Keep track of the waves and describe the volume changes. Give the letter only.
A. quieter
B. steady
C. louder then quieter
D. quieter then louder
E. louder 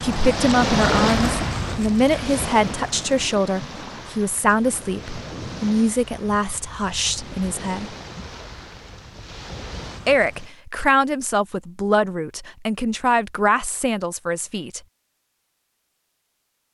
A.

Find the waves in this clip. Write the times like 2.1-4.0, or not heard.
0.0-10.5.